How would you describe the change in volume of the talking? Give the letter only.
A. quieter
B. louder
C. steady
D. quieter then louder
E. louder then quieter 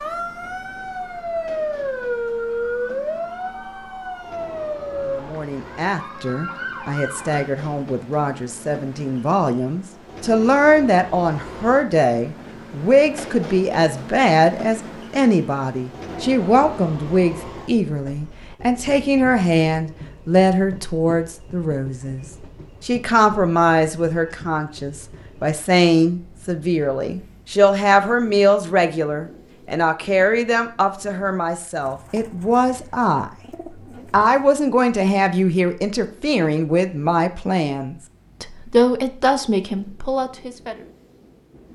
C.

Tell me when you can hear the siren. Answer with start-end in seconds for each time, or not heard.
0.0-7.5.